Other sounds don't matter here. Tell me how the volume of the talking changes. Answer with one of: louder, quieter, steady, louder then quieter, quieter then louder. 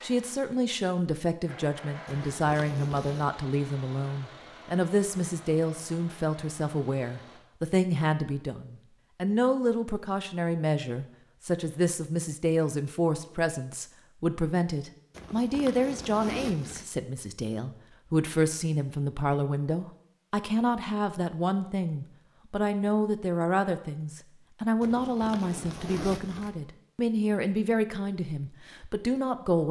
steady.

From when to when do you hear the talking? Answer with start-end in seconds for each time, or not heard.
0.0-29.6.